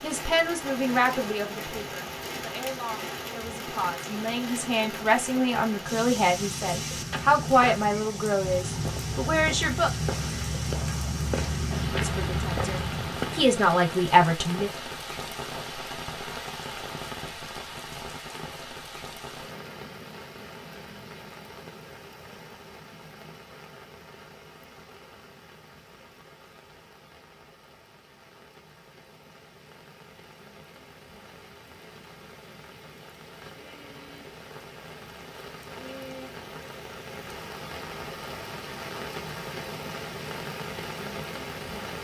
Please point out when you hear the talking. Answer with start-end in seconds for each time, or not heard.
0.0-9.9, 11.9-14.7.